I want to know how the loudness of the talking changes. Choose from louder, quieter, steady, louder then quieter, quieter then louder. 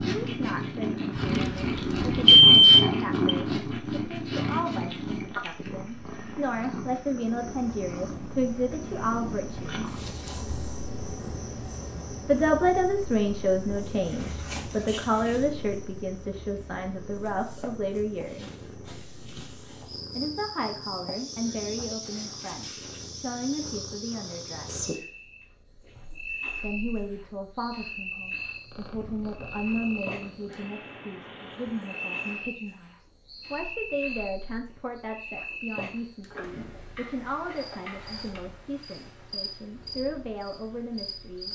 louder then quieter.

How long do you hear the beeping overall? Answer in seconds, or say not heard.
2 s.